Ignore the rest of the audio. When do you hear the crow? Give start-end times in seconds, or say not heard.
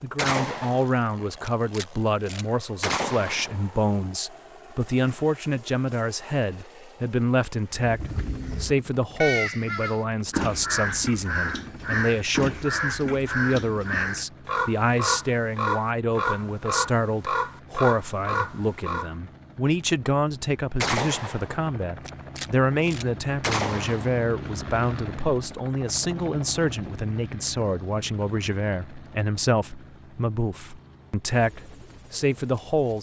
7.7-19.1.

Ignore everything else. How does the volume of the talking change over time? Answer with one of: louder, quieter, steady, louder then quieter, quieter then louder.
steady.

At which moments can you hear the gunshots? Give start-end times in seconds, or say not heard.
0.1-3.6, 20.8-24.2.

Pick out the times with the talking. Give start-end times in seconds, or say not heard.
0.0-32.9.